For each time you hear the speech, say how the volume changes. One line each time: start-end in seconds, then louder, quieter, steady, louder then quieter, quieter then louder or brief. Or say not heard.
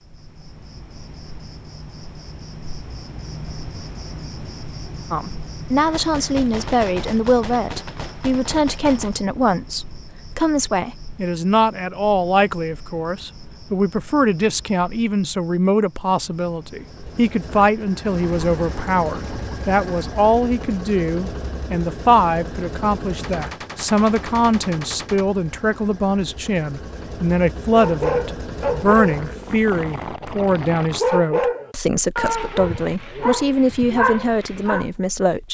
5.1-35.5 steady.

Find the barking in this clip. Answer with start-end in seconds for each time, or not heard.
27.7-34.9.